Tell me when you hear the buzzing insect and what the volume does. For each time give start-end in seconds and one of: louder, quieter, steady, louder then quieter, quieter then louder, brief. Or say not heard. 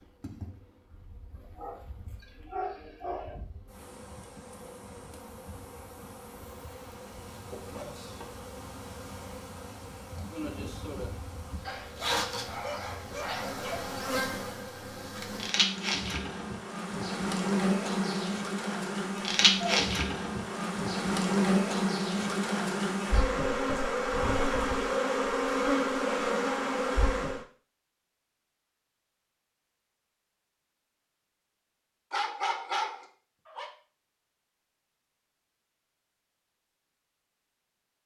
0.0-27.4 louder.